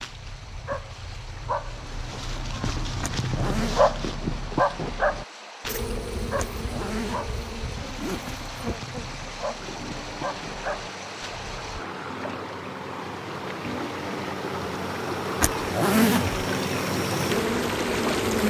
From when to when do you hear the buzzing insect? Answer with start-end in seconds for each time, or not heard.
5.7-18.4.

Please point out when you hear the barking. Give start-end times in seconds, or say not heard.
0.0-11.8.